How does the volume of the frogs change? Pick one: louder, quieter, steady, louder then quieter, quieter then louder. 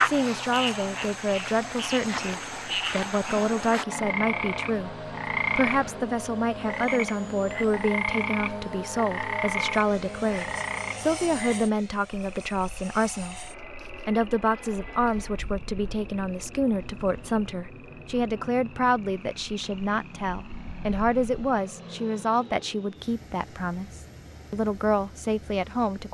quieter.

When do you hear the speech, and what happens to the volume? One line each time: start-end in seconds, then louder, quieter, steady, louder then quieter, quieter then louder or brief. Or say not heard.
0.0-26.0 steady.